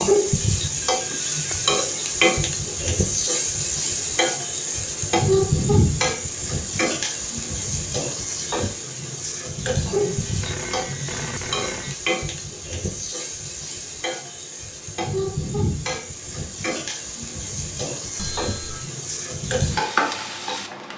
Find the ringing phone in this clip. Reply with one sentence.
You can hear the ringing phone from 0.7 to 1.8 s, from 9.9 to 11.9 s and from 18.1 to 18.9 s.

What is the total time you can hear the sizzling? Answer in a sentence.
The sizzling can be heard for 21 seconds in total.